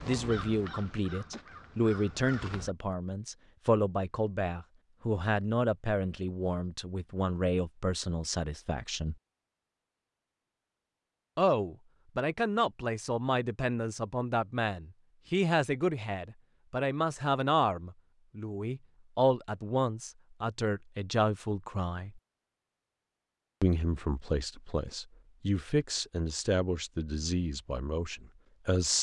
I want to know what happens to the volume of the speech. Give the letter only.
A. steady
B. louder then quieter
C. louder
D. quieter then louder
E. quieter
A.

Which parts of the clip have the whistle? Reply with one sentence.
The whistle can't be heard in this clip.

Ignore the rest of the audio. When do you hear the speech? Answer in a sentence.
You can hear the speech from 0.1 to 9.2 s, from 11.3 to 22.2 s and from 23.6 to 28.9 s.